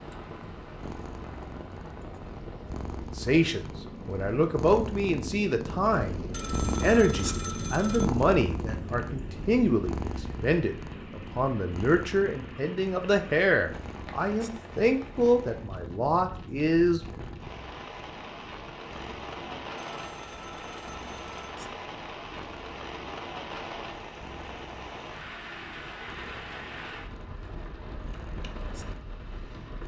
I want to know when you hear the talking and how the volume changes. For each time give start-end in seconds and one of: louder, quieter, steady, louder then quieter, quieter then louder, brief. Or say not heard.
3.1-17.0 steady.